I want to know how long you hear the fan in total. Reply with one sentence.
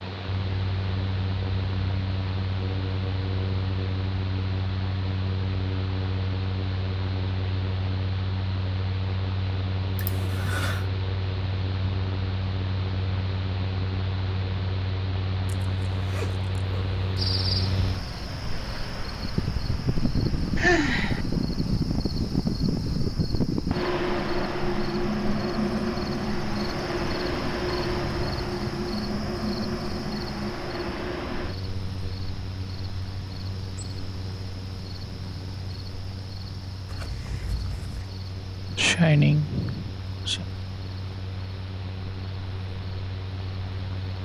You can hear the fan for 44 seconds altogether.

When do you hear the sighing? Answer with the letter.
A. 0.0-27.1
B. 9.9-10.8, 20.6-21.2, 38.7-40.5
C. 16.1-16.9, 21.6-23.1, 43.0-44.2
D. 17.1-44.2
B.